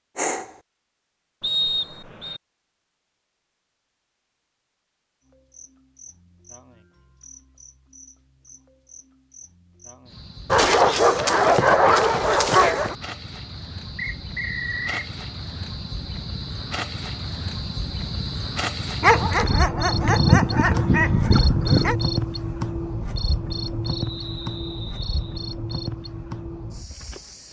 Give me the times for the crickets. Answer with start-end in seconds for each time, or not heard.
5.3-27.4.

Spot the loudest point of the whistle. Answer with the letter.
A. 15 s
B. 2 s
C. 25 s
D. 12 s
B.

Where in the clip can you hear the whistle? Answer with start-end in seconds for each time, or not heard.
1.4-2.4, 13.9-15.1, 23.9-25.4.